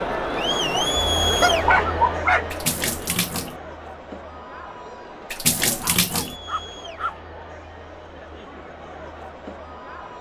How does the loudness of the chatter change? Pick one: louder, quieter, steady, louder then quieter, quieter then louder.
quieter.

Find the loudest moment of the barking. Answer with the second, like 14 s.
2 s.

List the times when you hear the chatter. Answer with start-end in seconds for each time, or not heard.
0.0-10.1.